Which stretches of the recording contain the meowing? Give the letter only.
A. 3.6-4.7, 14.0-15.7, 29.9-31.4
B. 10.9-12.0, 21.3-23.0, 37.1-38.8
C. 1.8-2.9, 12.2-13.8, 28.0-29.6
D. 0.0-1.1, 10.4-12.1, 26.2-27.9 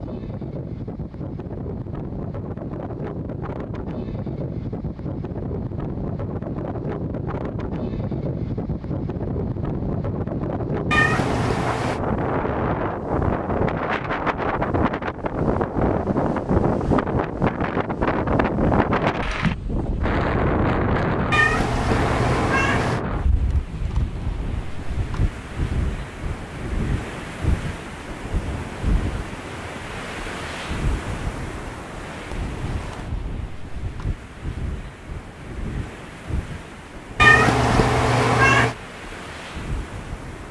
B.